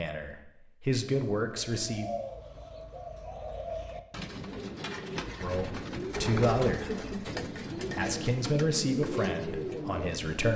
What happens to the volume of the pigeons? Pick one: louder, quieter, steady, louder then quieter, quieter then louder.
louder.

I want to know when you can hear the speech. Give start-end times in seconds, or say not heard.
0.0-2.1, 5.4-7.0, 7.9-10.5.